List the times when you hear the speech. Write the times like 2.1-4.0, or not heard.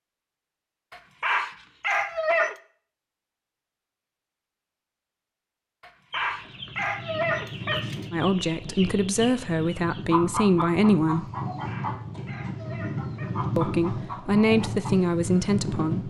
8.1-11.2, 13.6-16.0.